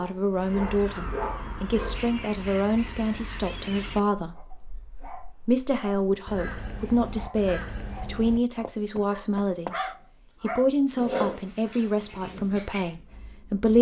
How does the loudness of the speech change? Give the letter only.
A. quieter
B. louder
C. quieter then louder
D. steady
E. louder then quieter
D.